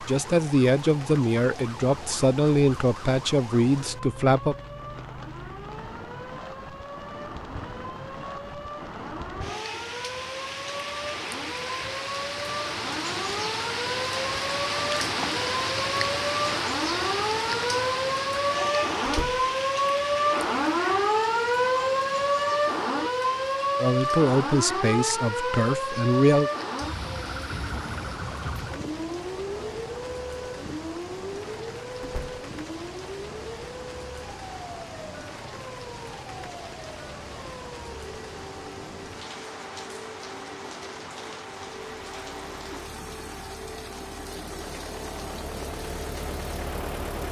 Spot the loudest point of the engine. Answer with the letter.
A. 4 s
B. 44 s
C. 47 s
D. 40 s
C.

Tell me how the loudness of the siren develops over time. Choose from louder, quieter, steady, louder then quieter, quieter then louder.
louder then quieter.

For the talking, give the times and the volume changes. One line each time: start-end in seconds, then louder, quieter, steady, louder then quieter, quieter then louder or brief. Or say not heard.
0.0-4.5 steady
23.8-26.5 brief.